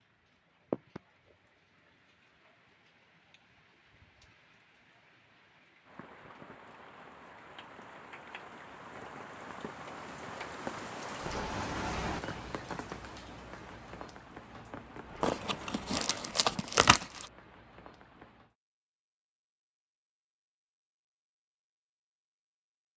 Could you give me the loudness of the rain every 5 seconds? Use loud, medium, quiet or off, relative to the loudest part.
medium, medium, loud, medium, off.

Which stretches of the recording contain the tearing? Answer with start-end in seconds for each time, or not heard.
15.2-17.2.